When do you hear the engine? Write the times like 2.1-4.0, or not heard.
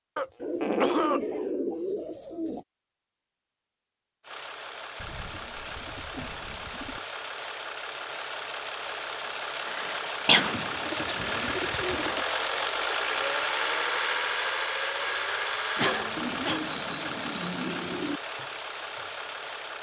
4.2-19.7.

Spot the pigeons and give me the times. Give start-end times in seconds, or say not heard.
0.4-2.6, 5.0-7.0, 10.4-12.2, 16.1-18.2.